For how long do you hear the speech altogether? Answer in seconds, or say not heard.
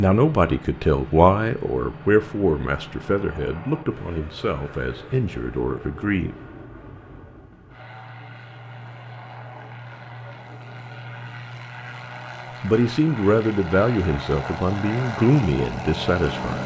10 s.